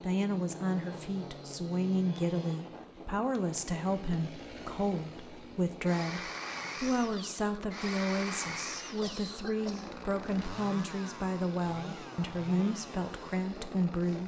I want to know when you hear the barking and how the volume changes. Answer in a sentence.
The barking can't be heard in this clip.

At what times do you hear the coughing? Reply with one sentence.
You can hear the coughing from 9.0 to 9.9 s.